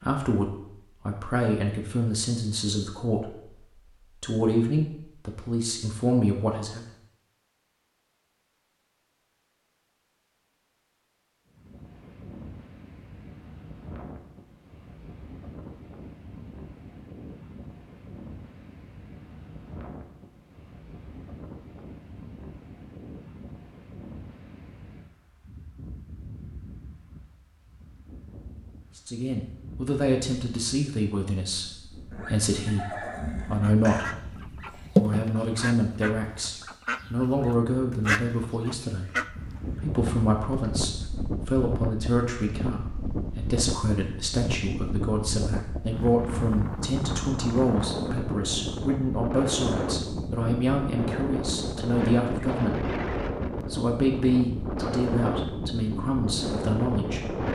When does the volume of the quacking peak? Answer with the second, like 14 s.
35 s.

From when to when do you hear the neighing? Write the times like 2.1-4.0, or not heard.
32.1-34.1.